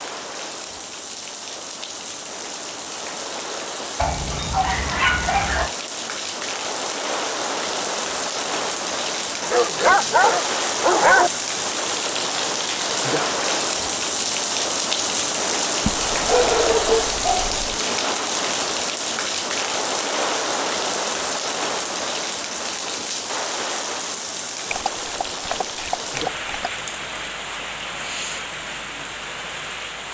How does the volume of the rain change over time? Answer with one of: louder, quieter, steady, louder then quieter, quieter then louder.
louder then quieter.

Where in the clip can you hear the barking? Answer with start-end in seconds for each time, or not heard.
4.0-5.7, 9.4-11.3, 15.8-17.8, 24.7-26.7.